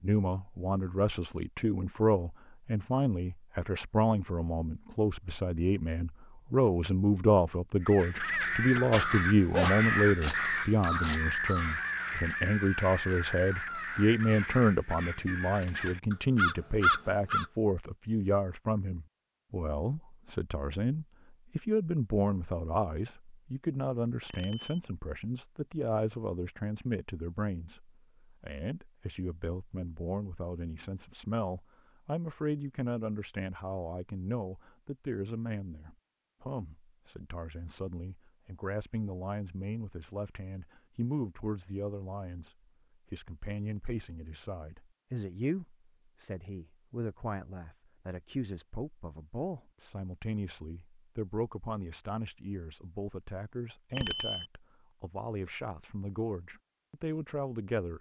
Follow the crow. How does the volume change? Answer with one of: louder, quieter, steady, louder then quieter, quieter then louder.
quieter then louder.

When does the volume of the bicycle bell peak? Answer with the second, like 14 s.
54 s.